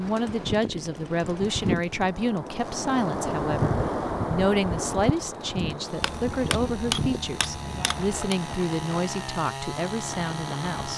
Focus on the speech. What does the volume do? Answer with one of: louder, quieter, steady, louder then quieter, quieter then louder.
steady.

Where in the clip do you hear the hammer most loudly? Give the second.
7 s.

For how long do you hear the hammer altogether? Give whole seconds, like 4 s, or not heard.
2 s.